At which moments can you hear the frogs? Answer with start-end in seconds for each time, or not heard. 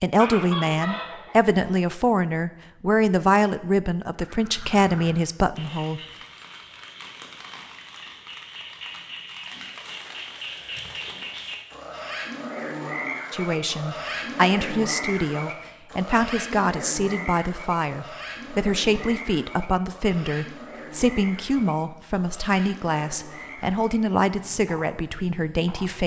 4.2-26.0.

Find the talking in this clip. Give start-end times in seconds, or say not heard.
0.0-6.0, 13.3-26.0.